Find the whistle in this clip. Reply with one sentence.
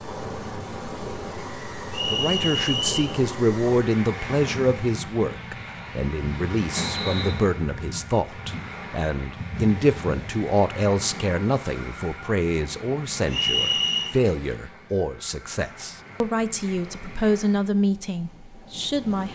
The whistle can be heard from 1.9 to 3.0 s, from 6.8 to 7.4 s and from 13.3 to 14.2 s.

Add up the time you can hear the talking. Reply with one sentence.
You can hear the talking for 17 seconds altogether.